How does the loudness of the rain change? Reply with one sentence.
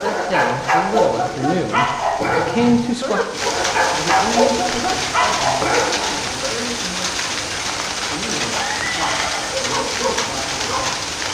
The loudness of the rain goes up.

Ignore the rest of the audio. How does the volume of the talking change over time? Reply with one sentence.
The volume of the talking goes down.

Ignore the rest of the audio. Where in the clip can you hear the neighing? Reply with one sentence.
The neighing can be heard from 2.2 to 2.9 s and from 8.5 to 9.6 s.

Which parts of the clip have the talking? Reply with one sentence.
The talking can be heard from 0.0 to 11.1 s.